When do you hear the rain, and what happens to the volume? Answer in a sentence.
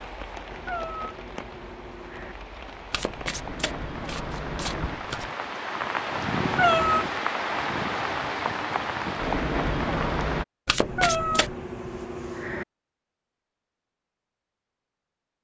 You can hear the rain from 0.0 to 10.4 s, getting louder.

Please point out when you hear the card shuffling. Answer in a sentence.
The card shuffling can be heard from 2.9 to 5.3 s and from 10.7 to 11.6 s.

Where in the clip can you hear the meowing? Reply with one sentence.
The meowing can be heard from 0.5 to 2.4 s, from 6.4 to 7.2 s and from 10.8 to 12.7 s.